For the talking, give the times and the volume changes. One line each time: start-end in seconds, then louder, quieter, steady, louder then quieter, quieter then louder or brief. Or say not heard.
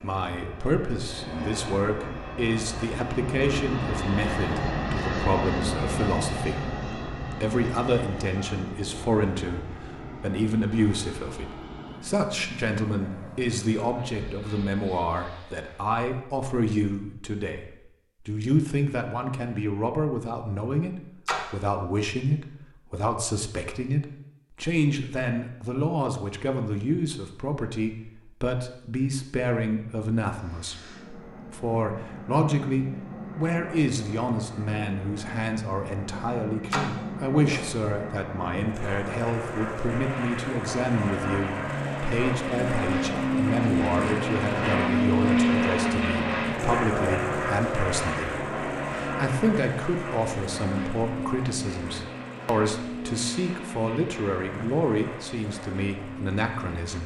0.0-57.0 steady.